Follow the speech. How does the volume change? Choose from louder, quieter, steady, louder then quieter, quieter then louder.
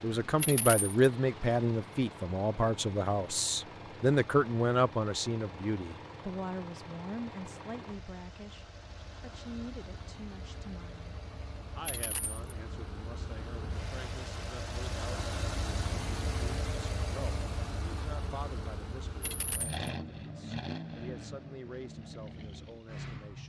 quieter.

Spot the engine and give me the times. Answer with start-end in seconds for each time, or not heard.
0.0-23.4.